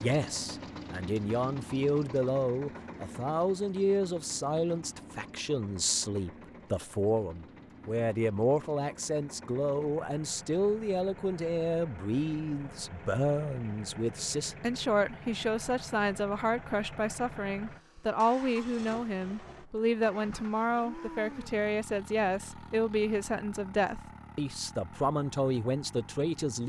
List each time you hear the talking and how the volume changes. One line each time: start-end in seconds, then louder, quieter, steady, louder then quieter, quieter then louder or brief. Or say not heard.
0.0-26.6 steady.